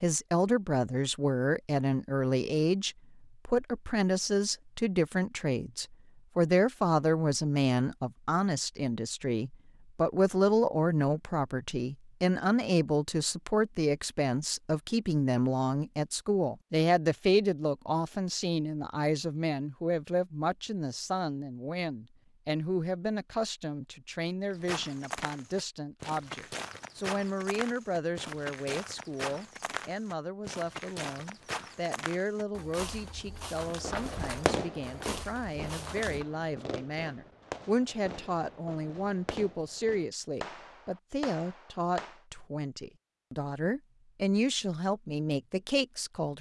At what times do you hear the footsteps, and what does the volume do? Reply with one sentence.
The footsteps can be heard from 24.5 to 36.2 s, at a steady volume.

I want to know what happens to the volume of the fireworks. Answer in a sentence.
The loudness of the fireworks goes down.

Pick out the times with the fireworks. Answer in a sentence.
The fireworks can be heard from 33.7 to 42.2 s.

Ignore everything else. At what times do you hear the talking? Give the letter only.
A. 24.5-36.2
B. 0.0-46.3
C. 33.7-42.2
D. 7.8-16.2
B.